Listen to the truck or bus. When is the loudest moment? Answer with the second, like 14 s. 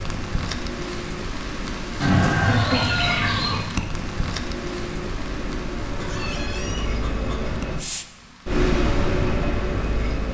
9 s.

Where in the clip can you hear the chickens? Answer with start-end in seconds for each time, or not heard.
2.0-3.6, 5.9-7.5.